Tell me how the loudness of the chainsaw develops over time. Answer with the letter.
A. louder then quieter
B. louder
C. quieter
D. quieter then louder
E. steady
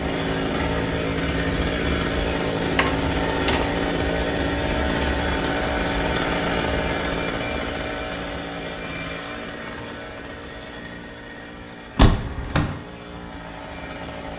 C.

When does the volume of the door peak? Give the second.
12 s.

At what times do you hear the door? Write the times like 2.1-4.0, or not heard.
2.8-3.8, 11.9-12.8.